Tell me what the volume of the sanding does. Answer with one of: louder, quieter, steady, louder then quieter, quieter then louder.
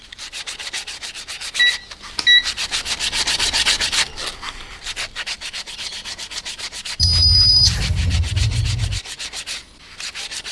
louder then quieter.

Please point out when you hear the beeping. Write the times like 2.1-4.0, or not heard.
1.6-2.5, 7.0-9.0.